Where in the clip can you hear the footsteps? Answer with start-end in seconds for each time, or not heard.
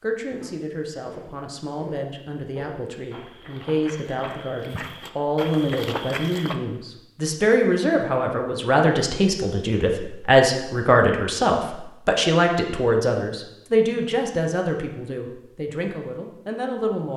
0.1-6.5.